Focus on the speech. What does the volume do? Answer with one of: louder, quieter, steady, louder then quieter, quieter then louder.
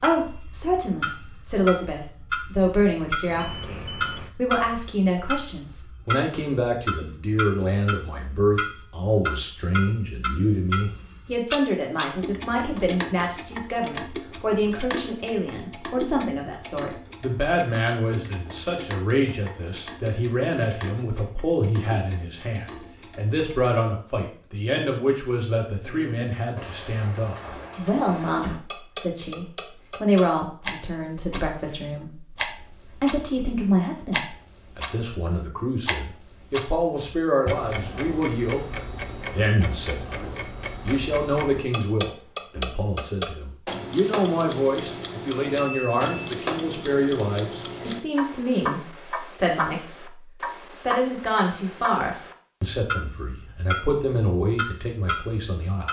steady.